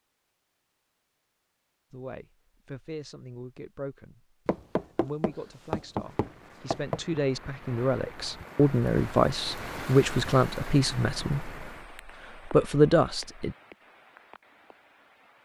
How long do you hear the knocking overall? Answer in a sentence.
You can hear the knocking for 3 seconds altogether.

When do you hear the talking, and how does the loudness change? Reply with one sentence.
You can hear the talking briefly from 1.9 to 4.2 s; from 5.0 to 11.6 s, getting louder; and briefly from 12.4 to 13.6 s.